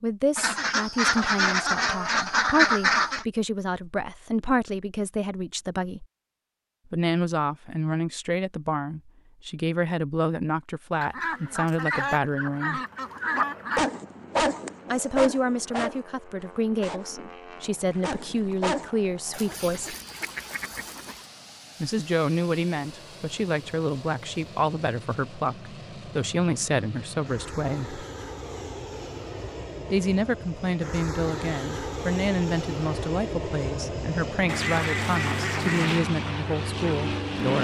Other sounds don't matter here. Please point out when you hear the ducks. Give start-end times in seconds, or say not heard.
0.3-3.2, 11.0-13.8, 19.3-21.2, 34.5-36.1.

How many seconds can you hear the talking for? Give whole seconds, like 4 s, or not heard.
31 s.